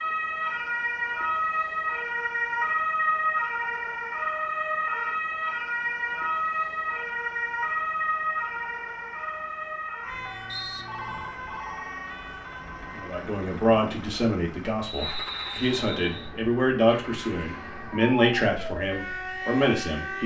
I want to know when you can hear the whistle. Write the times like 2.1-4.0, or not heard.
14.8-16.3.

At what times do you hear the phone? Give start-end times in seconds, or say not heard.
10.8-11.9.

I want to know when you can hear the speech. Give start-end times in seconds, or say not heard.
12.9-20.2.